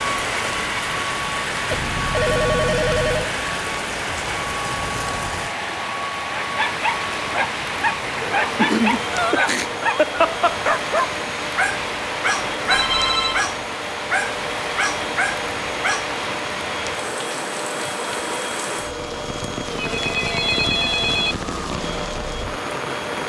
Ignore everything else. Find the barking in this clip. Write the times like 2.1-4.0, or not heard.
6.4-16.1.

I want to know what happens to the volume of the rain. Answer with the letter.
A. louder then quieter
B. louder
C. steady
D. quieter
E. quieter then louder
C.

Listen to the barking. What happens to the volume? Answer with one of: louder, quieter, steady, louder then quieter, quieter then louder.
steady.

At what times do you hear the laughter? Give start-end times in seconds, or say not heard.
8.6-10.6.